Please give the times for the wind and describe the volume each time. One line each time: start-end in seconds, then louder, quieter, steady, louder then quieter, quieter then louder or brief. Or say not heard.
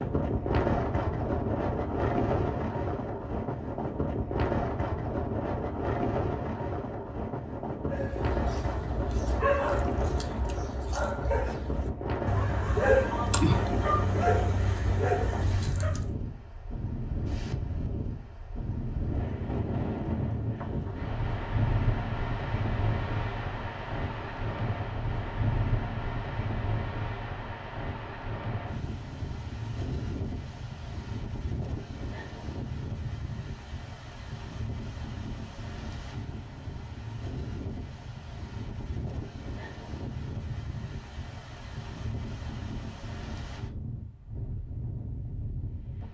0.0-46.0 quieter.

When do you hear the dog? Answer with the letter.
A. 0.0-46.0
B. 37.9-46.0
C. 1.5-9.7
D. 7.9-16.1
D.